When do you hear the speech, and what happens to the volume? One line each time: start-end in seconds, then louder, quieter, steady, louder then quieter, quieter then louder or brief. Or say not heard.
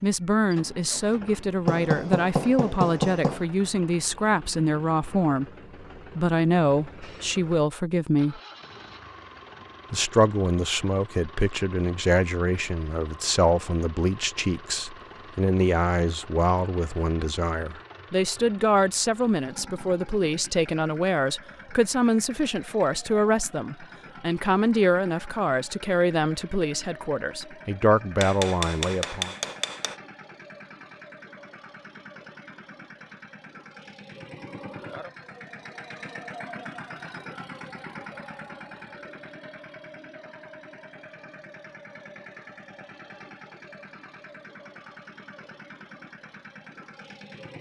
0.0-8.4 steady
9.9-29.4 steady.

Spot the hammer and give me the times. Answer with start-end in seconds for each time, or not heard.
1.6-3.5, 28.2-29.9.